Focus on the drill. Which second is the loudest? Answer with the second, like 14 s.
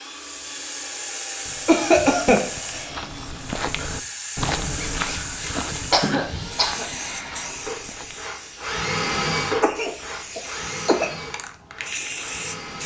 9 s.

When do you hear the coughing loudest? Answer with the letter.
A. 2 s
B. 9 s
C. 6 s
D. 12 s
A.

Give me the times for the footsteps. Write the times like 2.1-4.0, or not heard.
1.4-8.2.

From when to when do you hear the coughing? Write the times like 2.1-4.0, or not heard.
1.6-2.5, 5.2-6.8, 9.6-11.2.